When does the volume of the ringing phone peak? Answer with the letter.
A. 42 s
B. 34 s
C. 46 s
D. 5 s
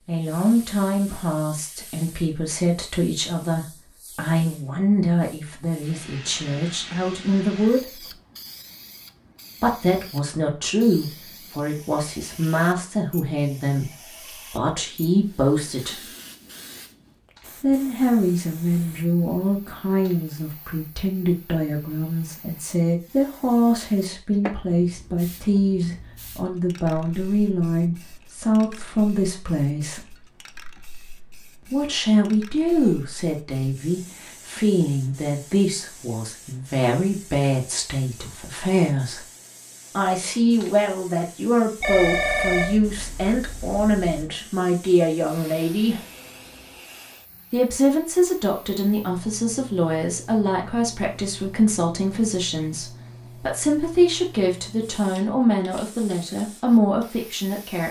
A.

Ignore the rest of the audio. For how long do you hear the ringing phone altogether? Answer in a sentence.
You can hear the ringing phone for 2 seconds altogether.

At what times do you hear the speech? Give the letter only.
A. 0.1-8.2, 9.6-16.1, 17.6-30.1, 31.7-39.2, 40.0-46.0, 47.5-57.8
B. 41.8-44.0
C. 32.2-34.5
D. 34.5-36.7
A.